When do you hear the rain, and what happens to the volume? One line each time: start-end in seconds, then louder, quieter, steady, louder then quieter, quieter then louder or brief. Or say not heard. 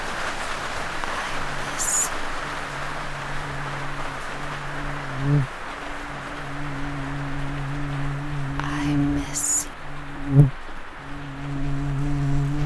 0.0-12.6 quieter.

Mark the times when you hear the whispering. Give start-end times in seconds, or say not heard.
1.0-2.1, 8.6-9.8.